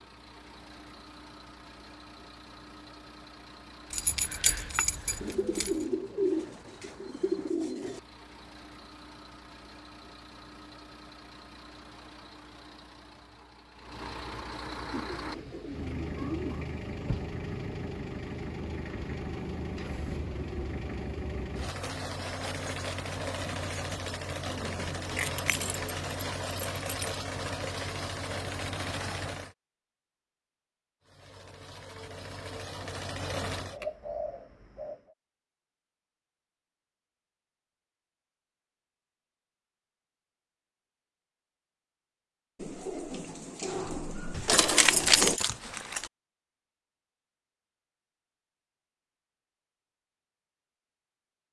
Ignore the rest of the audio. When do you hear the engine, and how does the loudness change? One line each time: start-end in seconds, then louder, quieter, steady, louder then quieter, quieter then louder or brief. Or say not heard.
0.0-29.6 louder
31.0-33.8 brief.